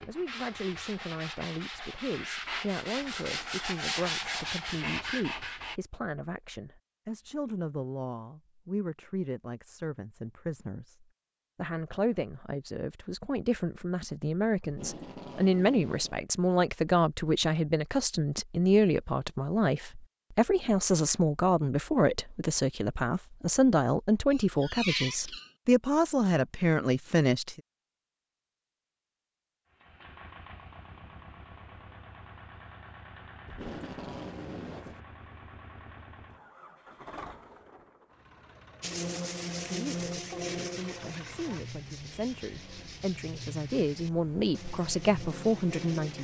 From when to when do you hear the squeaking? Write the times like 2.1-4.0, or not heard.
24.3-25.5.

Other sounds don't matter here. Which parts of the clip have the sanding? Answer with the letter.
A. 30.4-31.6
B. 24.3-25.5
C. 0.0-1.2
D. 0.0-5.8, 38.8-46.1
D.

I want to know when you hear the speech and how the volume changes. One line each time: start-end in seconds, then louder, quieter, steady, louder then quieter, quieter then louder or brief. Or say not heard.
0.1-27.6 louder
39.6-46.1 louder.